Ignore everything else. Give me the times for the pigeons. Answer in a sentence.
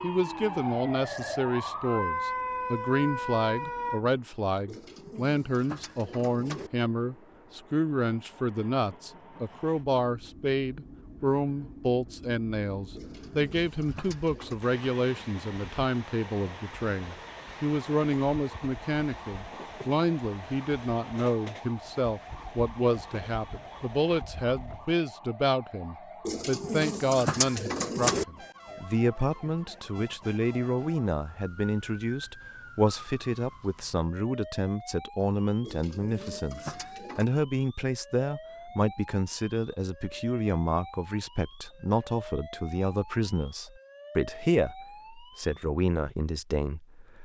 The pigeons can be heard from 4.7 to 6.7 s, from 12.9 to 14.6 s, from 26.2 to 28.2 s and from 35.6 to 37.2 s.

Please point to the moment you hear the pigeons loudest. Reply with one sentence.
The loudest moment of the pigeons is at 28 seconds.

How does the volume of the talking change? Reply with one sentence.
The loudness of the talking stays about the same.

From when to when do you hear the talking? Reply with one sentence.
You can hear the talking from 0.0 to 47.1 s.